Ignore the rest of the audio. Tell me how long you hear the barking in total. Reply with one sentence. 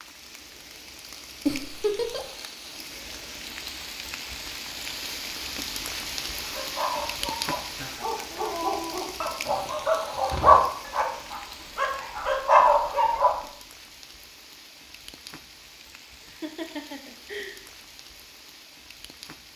You can hear the barking for 7 seconds altogether.